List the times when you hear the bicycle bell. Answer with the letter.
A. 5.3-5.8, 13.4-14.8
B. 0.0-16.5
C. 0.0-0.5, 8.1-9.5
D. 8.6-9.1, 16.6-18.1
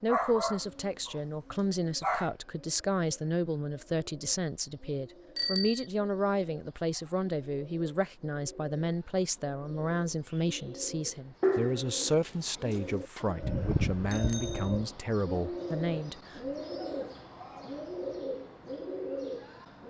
A.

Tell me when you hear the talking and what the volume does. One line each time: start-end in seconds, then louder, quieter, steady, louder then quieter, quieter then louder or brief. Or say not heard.
0.0-16.5 steady.